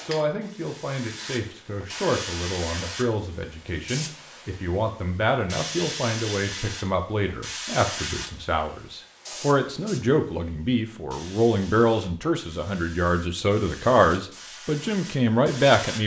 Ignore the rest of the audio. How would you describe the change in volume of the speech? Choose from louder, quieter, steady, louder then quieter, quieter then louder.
louder.